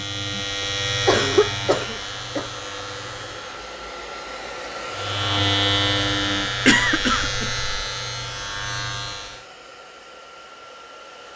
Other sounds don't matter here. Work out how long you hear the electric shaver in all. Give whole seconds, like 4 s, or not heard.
8 s.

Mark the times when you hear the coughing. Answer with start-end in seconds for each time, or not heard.
0.6-2.5, 6.7-7.7.